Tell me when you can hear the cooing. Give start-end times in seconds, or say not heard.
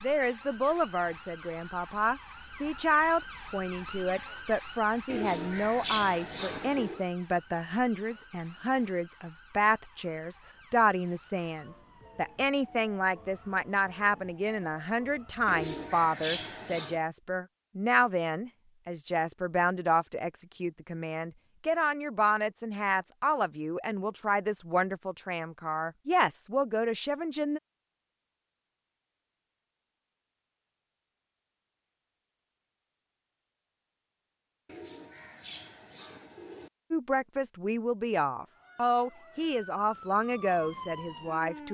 5.0-7.0, 15.4-17.0, 34.6-36.7.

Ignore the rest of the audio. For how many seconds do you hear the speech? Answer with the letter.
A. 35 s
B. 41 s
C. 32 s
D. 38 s
C.